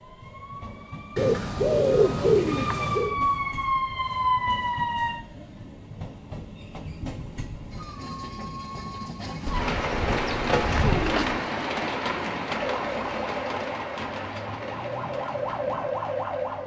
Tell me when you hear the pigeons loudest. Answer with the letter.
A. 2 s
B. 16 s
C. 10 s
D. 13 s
A.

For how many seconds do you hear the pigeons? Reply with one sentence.
You can hear the pigeons for 4 seconds altogether.